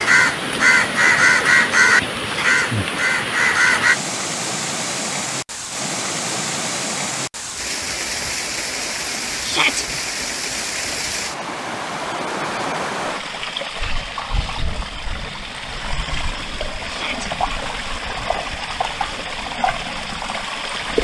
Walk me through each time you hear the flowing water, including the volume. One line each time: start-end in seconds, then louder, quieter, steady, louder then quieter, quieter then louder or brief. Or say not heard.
0.0-20.9 steady.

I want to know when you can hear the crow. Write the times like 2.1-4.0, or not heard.
0.0-4.0.